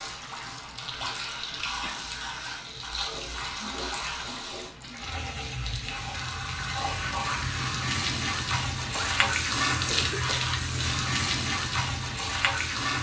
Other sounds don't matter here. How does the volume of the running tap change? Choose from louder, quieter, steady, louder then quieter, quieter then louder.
louder.